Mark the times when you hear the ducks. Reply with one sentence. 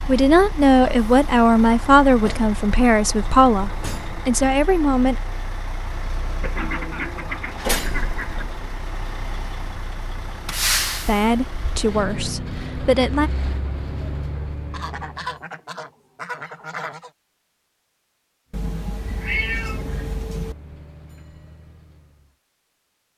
You can hear the ducks from 6.4 to 8.4 s and from 14.7 to 17.1 s.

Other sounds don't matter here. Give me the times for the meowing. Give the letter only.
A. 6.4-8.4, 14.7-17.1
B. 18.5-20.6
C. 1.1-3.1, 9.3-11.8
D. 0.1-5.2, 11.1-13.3
B.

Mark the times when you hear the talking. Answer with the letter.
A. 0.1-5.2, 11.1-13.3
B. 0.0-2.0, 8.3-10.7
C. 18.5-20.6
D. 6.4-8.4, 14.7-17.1
A.